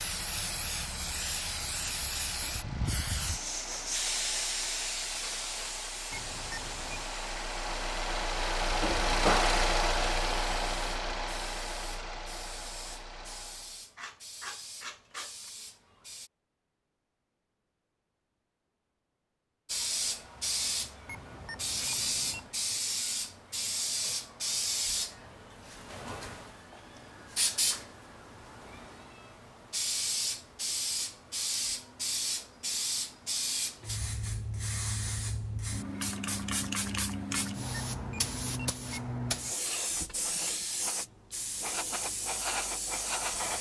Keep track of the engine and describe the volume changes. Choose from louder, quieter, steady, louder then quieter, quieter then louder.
louder then quieter.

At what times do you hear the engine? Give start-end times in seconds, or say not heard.
0.0-13.8.